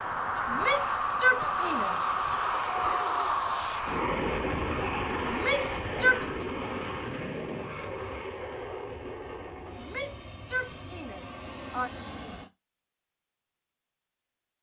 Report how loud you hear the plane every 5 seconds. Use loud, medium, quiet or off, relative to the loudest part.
loud, medium, quiet.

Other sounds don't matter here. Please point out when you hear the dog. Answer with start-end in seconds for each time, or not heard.
not heard.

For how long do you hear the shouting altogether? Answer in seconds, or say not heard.
5 s.